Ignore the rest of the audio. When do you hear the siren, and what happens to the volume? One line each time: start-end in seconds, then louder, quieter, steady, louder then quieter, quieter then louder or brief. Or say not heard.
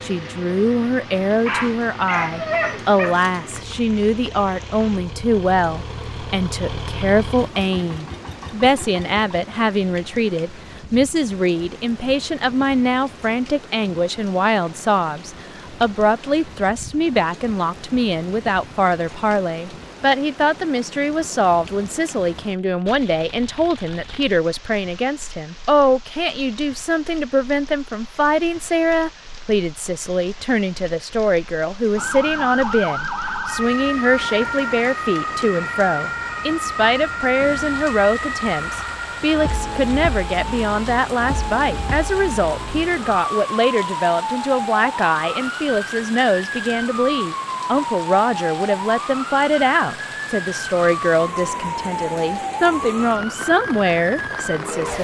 31.9-54.9 steady.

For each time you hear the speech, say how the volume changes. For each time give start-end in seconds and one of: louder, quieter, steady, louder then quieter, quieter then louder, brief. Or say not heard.
0.0-54.9 steady.